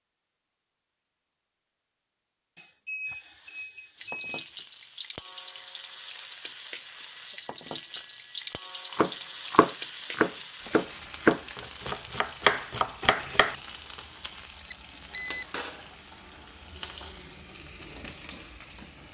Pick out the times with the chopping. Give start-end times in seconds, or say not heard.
8.9-13.6.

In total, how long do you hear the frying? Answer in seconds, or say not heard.
15 s.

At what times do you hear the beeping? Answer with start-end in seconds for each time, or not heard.
2.5-4.5, 6.8-8.7, 14.7-15.4.